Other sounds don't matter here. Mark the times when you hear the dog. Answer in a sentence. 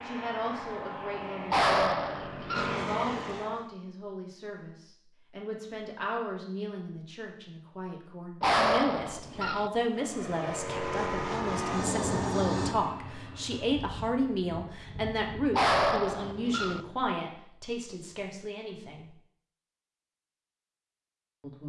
You can hear the dog from 1.5 to 2.8 s, from 8.4 to 9.7 s and from 15.5 to 16.8 s.